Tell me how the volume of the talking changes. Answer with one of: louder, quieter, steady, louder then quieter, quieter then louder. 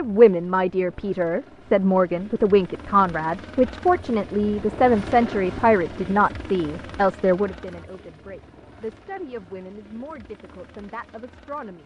quieter.